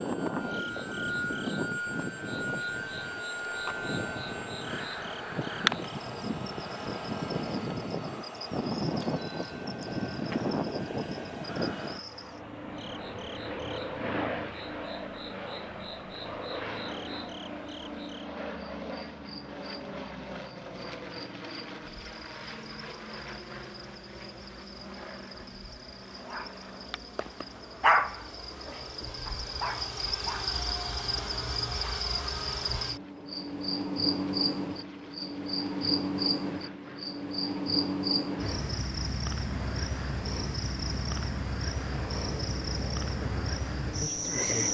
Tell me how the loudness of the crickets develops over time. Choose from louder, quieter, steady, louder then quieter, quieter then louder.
louder.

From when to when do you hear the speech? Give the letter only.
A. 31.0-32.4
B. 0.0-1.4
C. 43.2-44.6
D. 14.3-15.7
C.